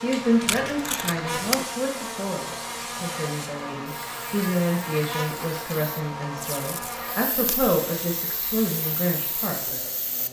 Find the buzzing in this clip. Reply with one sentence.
You can hear the buzzing from 0.0 to 10.2 s.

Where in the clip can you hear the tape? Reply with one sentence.
You can hear the tape from 0.5 to 1.6 s and from 6.3 to 7.6 s.